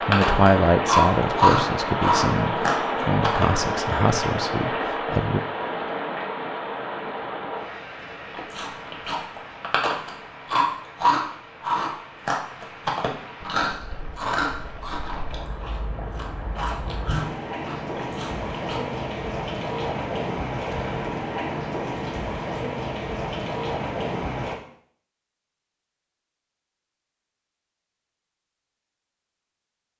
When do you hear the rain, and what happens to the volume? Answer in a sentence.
The rain can be heard from 0.0 to 24.6 s, getting quieter then louder.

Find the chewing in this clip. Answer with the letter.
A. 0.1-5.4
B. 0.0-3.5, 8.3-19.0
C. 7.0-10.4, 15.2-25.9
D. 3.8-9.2
B.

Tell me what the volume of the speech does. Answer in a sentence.
The volume of the speech goes down.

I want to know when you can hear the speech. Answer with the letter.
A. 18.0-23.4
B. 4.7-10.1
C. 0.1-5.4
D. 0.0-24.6
C.